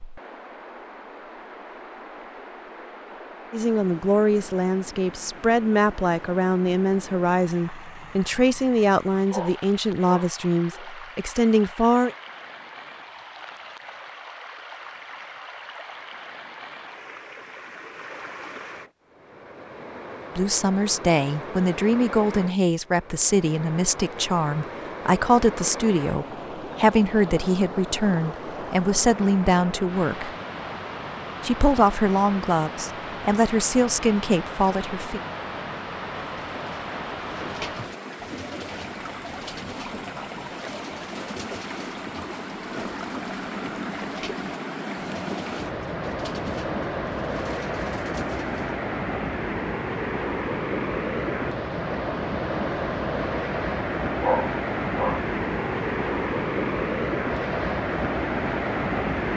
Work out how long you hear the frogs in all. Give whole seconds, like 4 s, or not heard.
not heard.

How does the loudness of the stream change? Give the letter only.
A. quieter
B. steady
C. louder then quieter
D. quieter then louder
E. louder
E.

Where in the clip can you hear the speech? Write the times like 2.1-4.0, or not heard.
3.5-12.2, 20.4-30.3, 31.4-35.2.